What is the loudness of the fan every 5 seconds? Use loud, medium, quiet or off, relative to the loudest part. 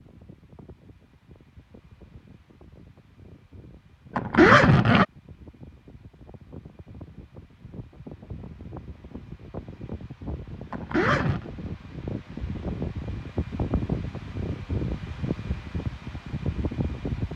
quiet, medium, loud, loud.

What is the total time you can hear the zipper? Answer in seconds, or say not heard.
2 s.